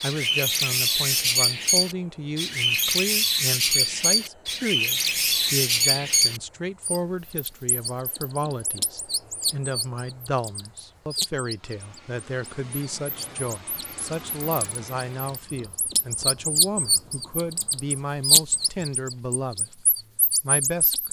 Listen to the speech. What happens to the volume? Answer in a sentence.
The loudness of the speech stays about the same.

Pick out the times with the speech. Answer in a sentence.
You can hear the speech from 0.0 to 21.0 s.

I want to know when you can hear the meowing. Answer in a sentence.
The meowing can't be heard in this clip.